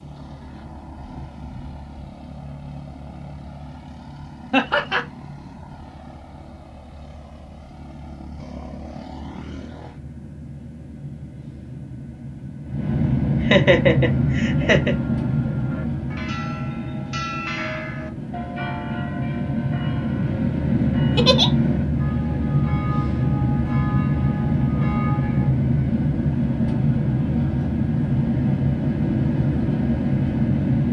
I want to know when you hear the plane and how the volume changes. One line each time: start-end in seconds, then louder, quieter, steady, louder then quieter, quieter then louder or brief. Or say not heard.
0.0-30.8 louder.